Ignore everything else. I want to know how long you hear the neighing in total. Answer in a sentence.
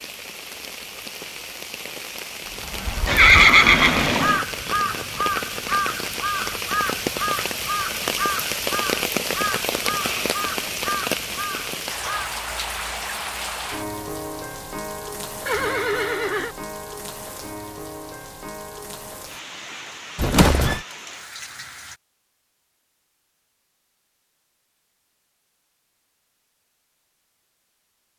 You can hear the neighing for 3 seconds altogether.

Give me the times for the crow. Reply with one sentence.
The crow can be heard from 2.5 to 12.4 s.